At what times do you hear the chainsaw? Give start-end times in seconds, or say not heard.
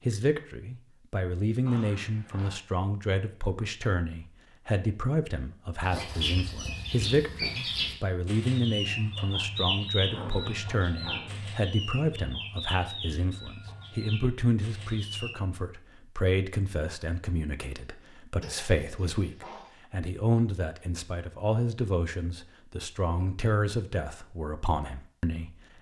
not heard.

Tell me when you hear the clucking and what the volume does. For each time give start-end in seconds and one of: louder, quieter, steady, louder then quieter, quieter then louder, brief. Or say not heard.
5.8-15.3 quieter.